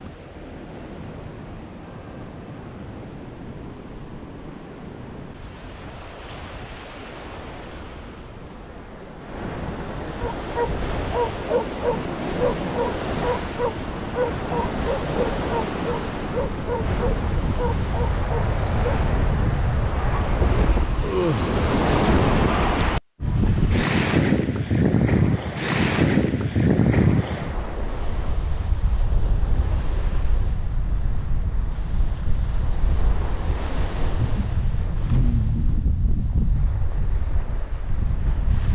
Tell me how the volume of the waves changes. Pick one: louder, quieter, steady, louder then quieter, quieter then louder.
louder then quieter.